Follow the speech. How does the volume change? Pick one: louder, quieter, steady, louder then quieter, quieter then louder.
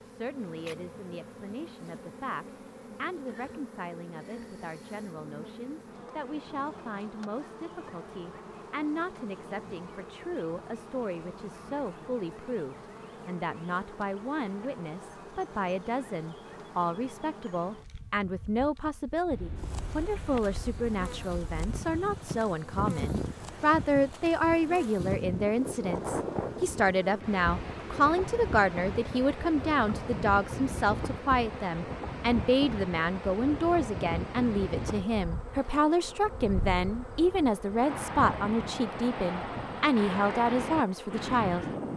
louder.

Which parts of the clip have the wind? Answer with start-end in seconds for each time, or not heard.
19.3-41.9.